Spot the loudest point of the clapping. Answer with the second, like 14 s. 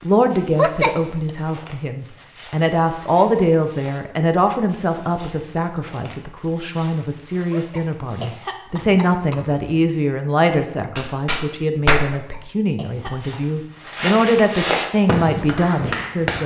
12 s.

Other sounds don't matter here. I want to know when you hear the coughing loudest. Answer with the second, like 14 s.
1 s.